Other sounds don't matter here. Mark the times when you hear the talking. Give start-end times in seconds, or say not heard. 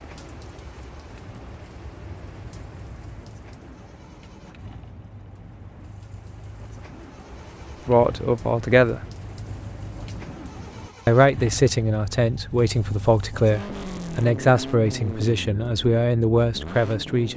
7.8-9.0, 11.1-17.3.